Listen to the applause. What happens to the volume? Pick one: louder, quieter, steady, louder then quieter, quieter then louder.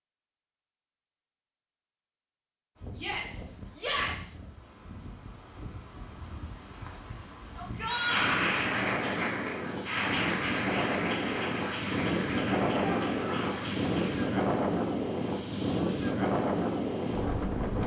quieter.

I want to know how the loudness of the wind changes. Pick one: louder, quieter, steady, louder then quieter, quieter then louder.
louder.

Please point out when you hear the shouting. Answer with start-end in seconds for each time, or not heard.
3.0-4.3, 7.5-8.5, 12.8-13.7.